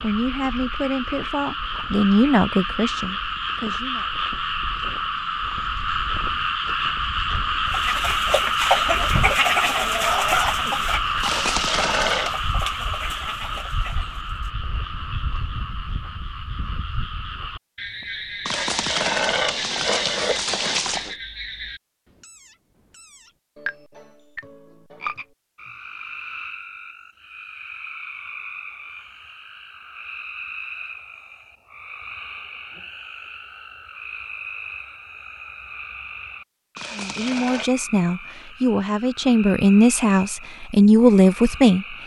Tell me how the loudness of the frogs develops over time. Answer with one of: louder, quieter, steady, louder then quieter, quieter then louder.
quieter.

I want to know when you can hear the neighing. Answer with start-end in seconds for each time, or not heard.
11.2-12.3, 18.4-21.1, 36.8-37.7.